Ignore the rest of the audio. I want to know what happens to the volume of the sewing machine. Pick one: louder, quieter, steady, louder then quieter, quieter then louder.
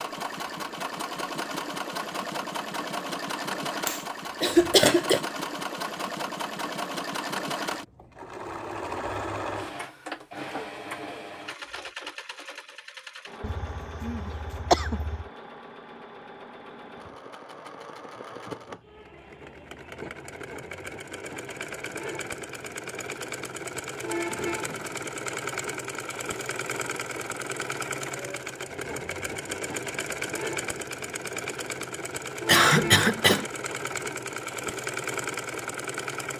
quieter then louder.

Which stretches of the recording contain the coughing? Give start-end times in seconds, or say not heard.
3.9-5.2, 13.4-15.2, 32.5-33.5.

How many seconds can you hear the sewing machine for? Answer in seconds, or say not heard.
36 s.